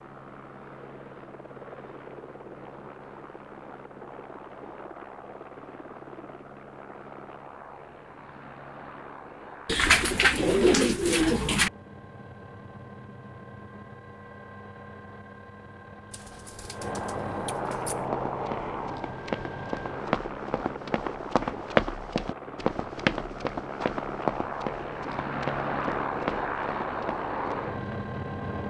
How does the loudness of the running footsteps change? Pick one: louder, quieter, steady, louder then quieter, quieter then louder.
louder then quieter.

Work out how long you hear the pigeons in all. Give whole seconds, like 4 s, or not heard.
4 s.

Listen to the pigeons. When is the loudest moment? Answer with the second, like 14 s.
11 s.